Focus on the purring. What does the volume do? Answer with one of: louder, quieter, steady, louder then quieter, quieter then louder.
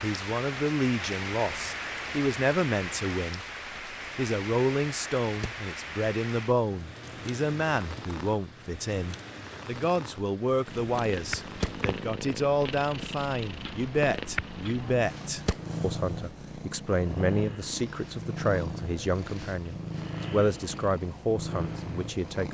steady.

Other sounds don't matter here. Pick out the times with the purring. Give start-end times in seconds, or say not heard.
10.7-22.4.